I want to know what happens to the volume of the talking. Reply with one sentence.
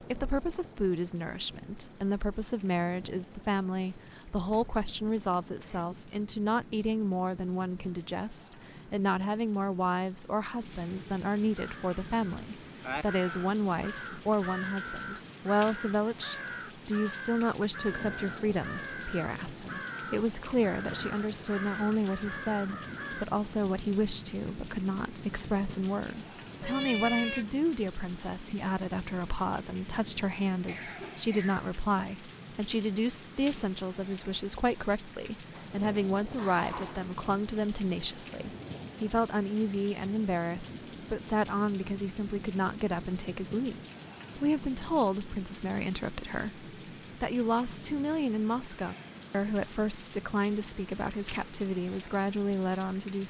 The loudness of the talking stays about the same.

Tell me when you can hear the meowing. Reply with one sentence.
The meowing can be heard from 26.6 to 27.4 s.